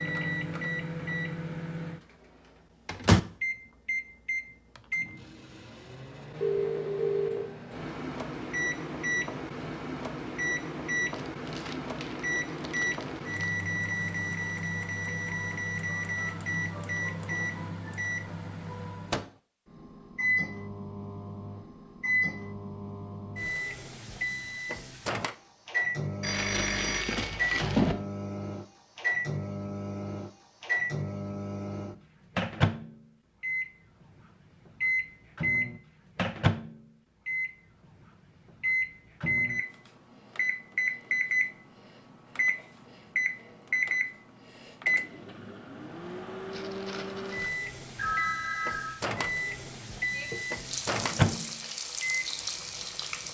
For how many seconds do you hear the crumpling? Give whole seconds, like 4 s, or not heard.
5 s.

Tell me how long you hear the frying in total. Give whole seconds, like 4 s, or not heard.
3 s.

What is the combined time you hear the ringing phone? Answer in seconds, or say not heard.
4 s.